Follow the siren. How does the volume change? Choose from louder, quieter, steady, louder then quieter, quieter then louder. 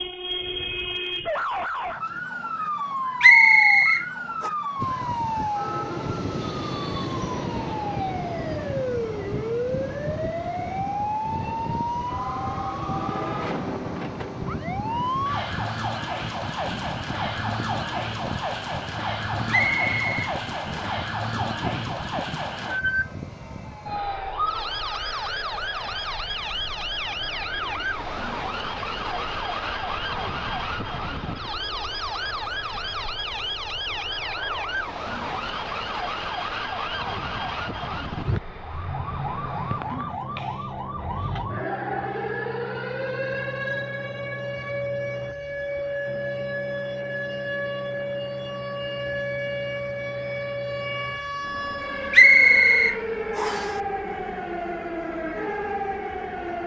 steady.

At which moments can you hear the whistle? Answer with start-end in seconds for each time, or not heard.
3.2-4.5, 19.5-20.9, 52.1-53.7.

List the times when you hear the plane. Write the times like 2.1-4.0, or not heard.
4.8-56.6.